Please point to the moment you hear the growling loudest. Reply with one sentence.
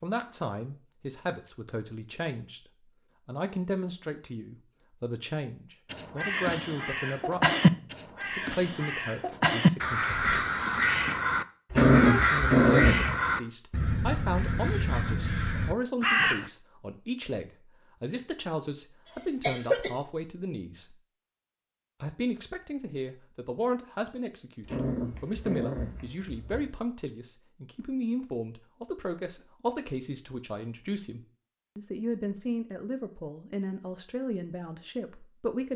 The volume of the growling peaks at 12 seconds.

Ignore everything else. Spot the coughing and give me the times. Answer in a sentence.
You can hear the coughing from 10.1 to 11.2 s and from 19.1 to 19.9 s.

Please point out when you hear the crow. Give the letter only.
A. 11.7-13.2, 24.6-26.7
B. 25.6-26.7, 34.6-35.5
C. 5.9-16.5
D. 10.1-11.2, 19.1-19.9
C.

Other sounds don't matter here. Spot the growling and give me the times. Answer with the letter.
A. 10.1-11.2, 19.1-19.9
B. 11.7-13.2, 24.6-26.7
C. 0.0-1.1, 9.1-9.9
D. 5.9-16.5
B.